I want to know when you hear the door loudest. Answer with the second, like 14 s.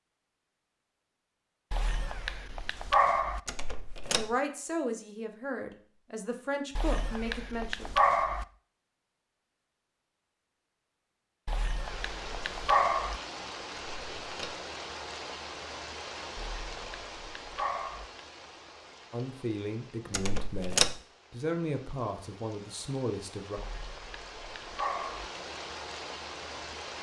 21 s.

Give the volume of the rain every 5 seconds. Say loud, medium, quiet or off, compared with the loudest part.
off, off, loud, loud, medium, loud.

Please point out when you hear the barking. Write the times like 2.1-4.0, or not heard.
1.7-3.4, 6.8-8.4, 11.4-13.2, 16.4-18.1, 23.6-25.3.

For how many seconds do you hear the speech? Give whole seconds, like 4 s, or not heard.
8 s.